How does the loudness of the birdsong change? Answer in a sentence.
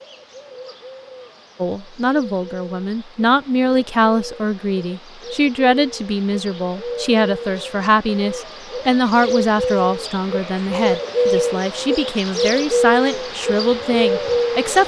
The volume of the birdsong goes up.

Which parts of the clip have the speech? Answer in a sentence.
You can hear the speech from 1.6 to 14.8 s.